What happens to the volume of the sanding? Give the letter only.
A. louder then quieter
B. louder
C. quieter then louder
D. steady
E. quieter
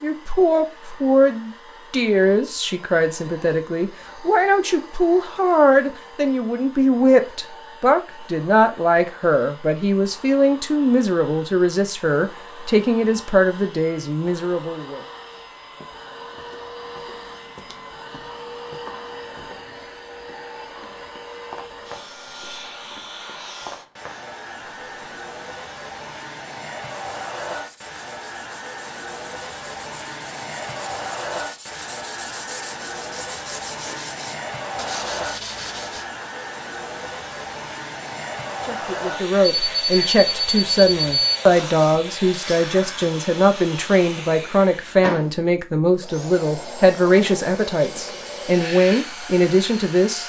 B.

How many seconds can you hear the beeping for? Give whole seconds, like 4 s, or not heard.
2 s.